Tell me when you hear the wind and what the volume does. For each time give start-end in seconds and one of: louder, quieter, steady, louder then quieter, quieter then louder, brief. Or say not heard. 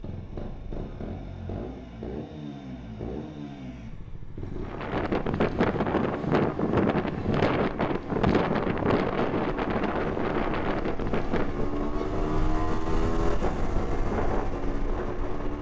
4.7-15.5 quieter.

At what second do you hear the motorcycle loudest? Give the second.
13 s.